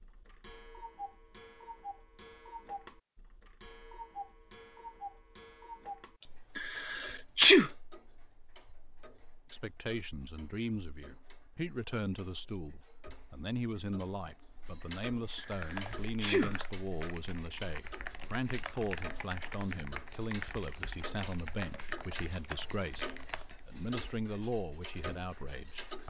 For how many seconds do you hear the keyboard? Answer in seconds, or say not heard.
8 s.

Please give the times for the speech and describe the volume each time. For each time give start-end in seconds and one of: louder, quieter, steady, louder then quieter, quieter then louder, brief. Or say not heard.
9.5-26.0 steady.